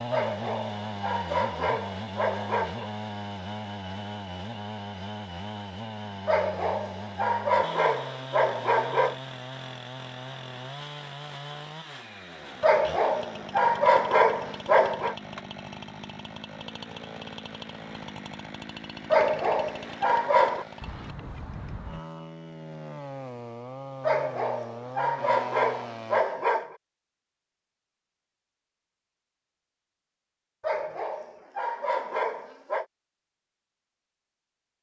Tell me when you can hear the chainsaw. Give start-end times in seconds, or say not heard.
0.0-26.2.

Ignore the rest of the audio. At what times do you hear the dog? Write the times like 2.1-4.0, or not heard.
0.1-2.9, 6.2-9.2, 12.6-15.2, 19.1-20.6, 24.0-26.8, 30.6-32.9.